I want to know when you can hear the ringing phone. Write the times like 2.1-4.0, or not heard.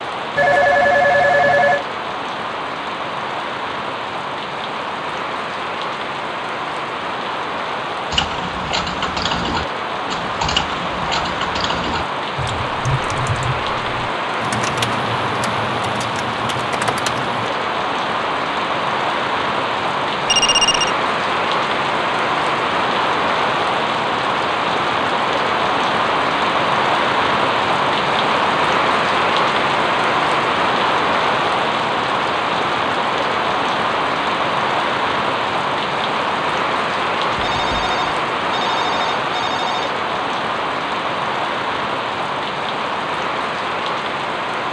0.3-1.9, 20.2-20.9, 37.3-39.9.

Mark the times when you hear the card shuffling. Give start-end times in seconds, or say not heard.
not heard.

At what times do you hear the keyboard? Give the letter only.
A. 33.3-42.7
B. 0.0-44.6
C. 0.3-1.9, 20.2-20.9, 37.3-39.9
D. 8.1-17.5
D.